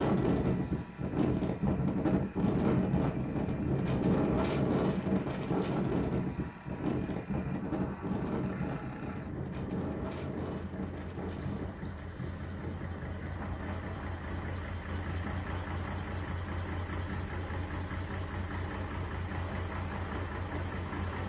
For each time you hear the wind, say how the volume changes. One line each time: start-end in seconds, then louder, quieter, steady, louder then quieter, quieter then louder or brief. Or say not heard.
0.0-21.1 quieter.